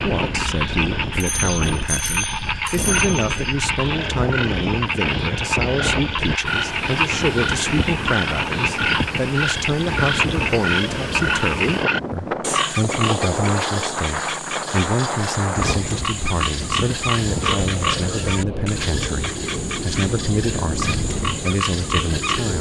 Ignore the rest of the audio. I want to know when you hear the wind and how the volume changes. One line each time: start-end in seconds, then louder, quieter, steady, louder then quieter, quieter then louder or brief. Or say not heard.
0.0-22.5 steady.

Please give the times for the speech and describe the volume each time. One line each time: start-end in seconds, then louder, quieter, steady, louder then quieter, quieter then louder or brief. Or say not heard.
0.0-22.5 steady.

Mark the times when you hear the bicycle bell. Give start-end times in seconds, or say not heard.
1.1-3.3.